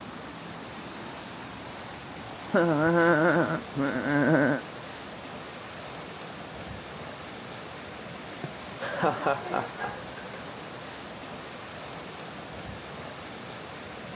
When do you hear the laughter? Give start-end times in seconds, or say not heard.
2.5-4.7, 8.4-10.4.